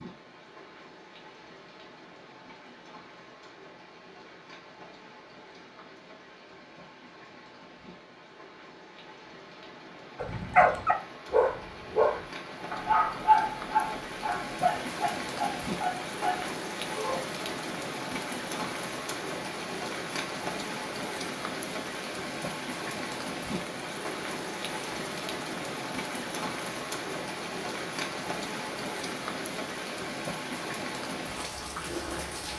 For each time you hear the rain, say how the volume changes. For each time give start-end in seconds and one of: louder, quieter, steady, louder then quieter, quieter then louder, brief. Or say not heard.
0.0-32.5 louder.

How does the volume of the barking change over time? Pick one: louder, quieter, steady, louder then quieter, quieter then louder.
quieter.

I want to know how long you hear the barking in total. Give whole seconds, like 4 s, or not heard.
7 s.